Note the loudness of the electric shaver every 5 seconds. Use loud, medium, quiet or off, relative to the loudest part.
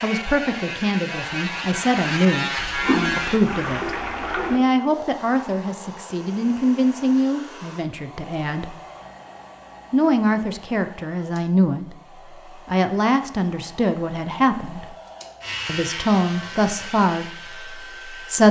loud, off, off, medium.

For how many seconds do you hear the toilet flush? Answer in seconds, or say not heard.
2 s.